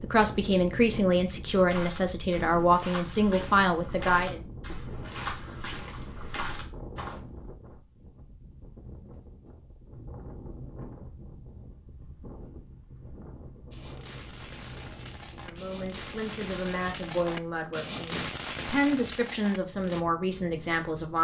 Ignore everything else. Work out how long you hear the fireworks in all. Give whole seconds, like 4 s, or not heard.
6 s.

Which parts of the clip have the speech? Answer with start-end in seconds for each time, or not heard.
0.0-4.4, 15.4-21.1.